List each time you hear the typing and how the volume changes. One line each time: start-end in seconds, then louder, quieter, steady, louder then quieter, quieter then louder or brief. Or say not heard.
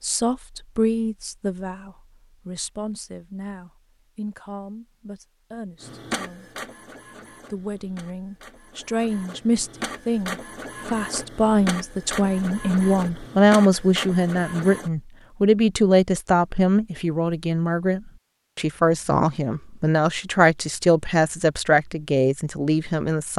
not heard.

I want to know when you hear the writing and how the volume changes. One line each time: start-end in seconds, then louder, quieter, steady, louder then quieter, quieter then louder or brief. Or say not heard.
not heard.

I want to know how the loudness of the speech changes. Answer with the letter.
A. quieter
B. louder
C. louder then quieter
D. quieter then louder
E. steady
B.